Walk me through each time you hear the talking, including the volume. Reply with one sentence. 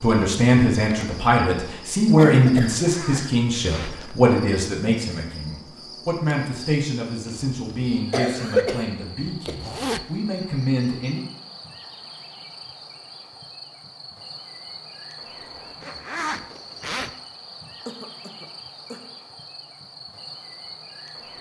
You can hear the talking from 0.0 to 11.2 s, getting quieter.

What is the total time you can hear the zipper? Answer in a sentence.
You can hear the zipper for 3 seconds altogether.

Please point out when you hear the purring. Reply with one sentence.
The purring can't be heard in this clip.